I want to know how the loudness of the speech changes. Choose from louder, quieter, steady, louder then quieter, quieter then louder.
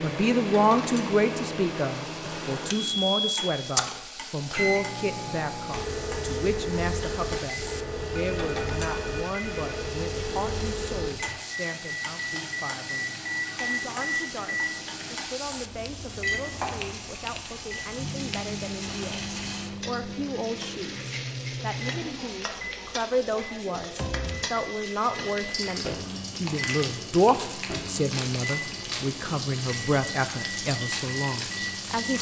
quieter then louder.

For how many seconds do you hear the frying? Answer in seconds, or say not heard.
32 s.